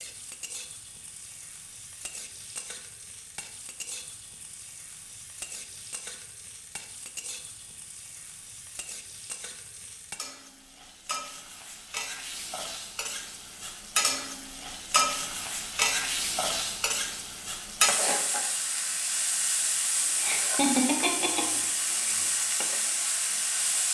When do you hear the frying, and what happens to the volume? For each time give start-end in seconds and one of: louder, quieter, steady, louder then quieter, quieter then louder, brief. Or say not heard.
0.0-23.9 louder.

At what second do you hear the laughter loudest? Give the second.
21 s.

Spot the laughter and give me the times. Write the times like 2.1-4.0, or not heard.
20.1-22.4.